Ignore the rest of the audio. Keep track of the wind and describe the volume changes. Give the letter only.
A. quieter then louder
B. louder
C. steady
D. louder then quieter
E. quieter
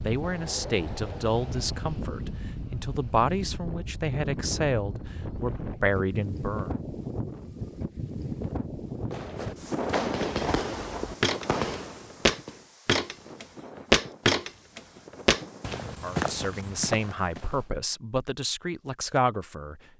E.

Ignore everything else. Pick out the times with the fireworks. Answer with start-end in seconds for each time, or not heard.
9.1-12.7.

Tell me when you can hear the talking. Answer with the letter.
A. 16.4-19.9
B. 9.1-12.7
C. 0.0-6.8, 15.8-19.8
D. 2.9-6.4
C.